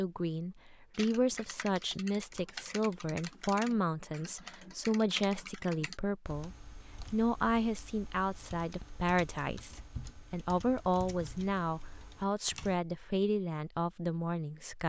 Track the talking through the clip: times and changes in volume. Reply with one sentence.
The talking can be heard from 0.0 to 14.8 s, at a steady volume.